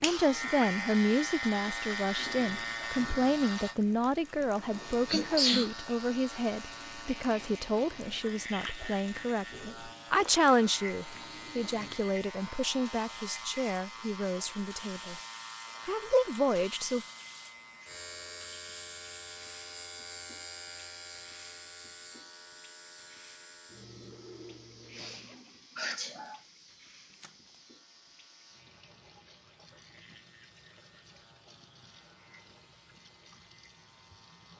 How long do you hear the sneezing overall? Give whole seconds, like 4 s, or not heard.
2 s.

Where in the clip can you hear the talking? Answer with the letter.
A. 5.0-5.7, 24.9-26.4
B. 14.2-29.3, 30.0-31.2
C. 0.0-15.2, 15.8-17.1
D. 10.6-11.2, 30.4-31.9
C.